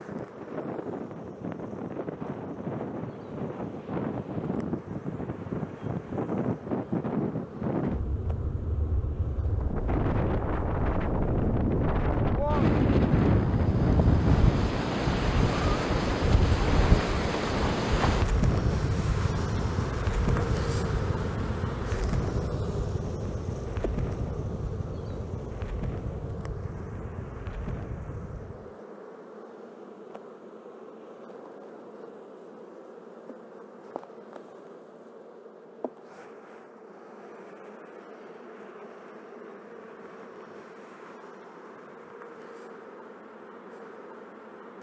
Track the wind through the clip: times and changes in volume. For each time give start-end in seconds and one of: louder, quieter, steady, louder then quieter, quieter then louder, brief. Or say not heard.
0.0-28.8 louder then quieter.